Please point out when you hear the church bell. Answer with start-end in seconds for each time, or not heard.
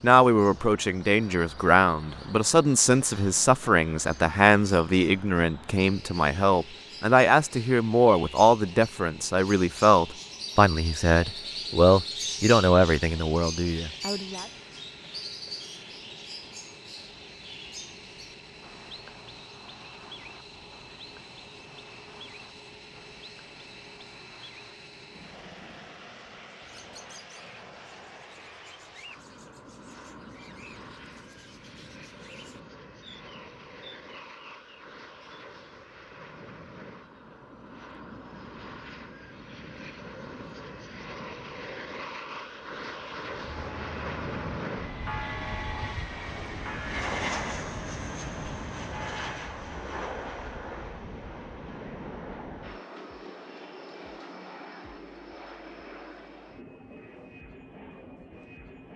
43.3-49.4.